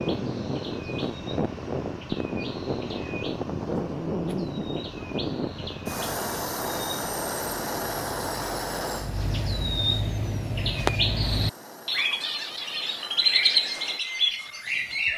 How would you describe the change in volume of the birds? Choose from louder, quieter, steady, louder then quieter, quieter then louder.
louder.